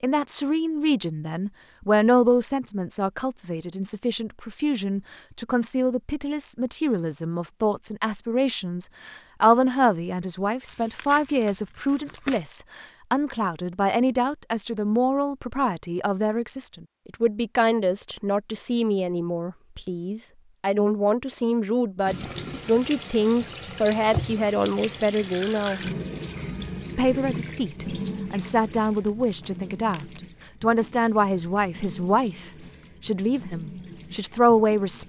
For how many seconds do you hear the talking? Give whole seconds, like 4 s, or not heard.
34 s.